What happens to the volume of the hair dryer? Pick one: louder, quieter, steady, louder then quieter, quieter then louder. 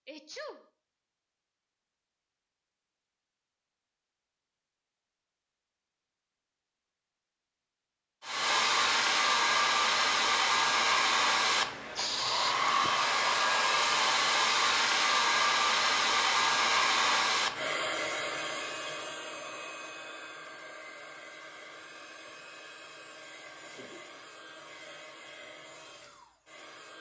quieter.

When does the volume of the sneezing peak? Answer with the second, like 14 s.
12 s.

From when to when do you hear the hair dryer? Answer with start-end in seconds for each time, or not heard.
8.2-26.9.